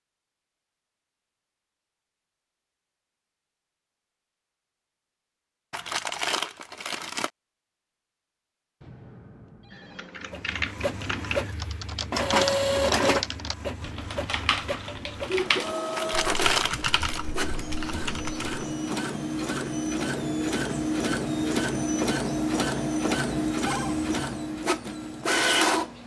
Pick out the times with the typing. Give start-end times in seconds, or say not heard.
9.7-18.6.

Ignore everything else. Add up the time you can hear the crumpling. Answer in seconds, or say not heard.
3 s.